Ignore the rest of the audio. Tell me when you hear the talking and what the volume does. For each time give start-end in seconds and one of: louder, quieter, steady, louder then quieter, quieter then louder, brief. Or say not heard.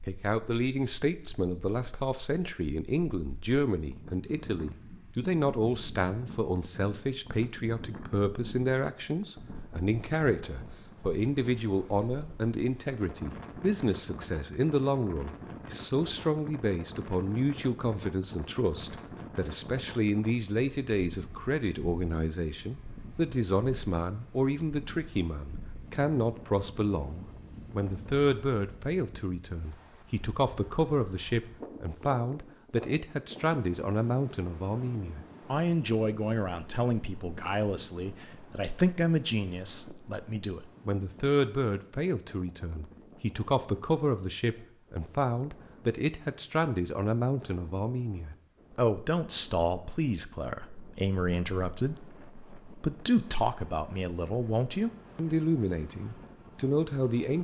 0.1-57.3 steady.